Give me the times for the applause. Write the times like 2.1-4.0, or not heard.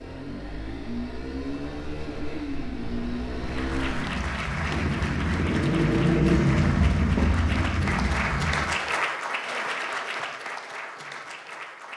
3.3-11.9.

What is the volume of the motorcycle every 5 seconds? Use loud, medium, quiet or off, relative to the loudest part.
medium, loud, off.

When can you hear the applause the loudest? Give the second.
9 s.